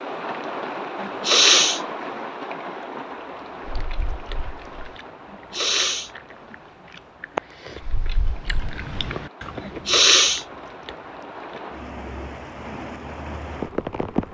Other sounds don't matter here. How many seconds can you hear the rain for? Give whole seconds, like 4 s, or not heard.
14 s.